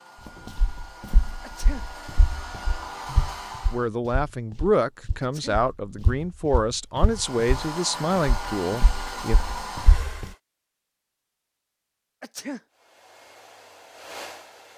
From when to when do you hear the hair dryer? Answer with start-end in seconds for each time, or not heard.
0.0-3.9, 7.0-10.4, 12.7-14.7.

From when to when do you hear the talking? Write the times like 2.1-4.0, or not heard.
3.7-9.4.